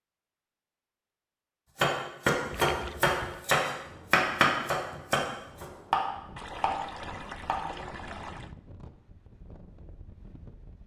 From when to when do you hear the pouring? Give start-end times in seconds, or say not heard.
2.5-3.5, 6.3-8.6.